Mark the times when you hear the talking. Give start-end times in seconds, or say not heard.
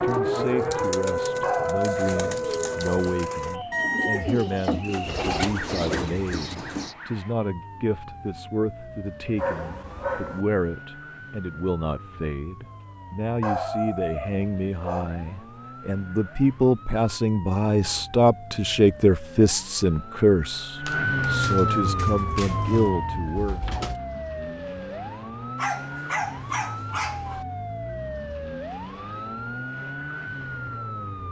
0.0-23.8.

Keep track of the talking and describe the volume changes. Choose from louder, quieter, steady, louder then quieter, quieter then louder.
louder.